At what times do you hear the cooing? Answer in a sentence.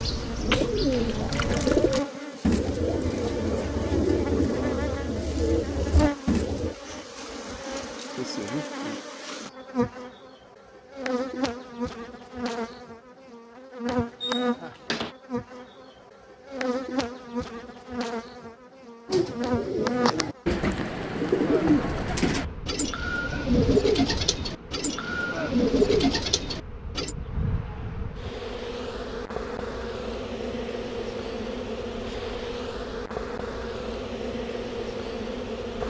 The cooing can be heard from 0.0 to 6.8 s and from 19.1 to 27.1 s.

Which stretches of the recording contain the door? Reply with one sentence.
You can hear the door from 13.8 to 15.2 s.